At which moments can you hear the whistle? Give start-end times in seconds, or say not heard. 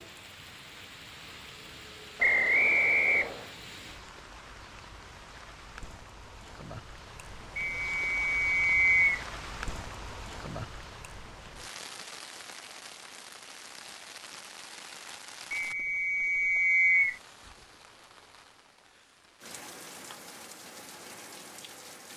2.2-3.5, 7.5-9.2, 15.5-17.2.